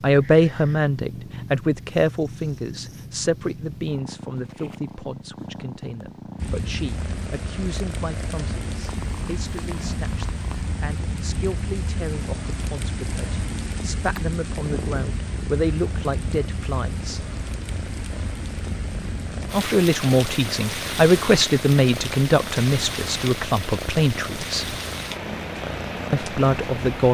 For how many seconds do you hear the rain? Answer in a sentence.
The rain can be heard for 21 seconds in total.